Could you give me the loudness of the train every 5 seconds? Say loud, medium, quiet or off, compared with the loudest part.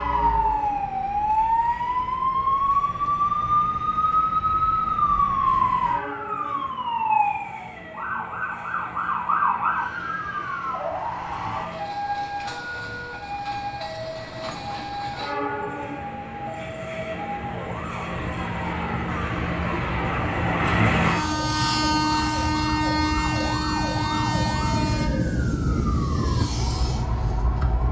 quiet, quiet, quiet, medium, loud, quiet.